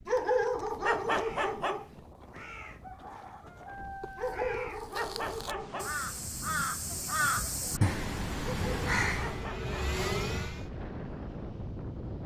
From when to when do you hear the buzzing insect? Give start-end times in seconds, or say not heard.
not heard.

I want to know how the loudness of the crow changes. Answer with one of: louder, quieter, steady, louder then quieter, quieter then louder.
louder.